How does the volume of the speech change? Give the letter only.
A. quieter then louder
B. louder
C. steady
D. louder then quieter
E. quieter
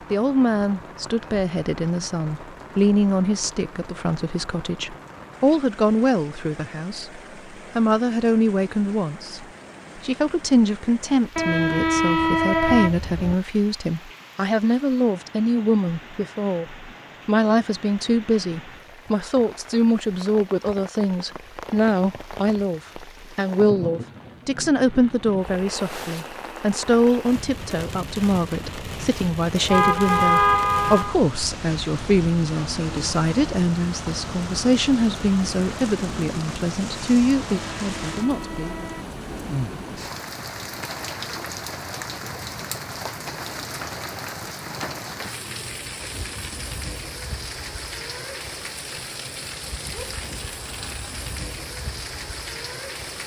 C.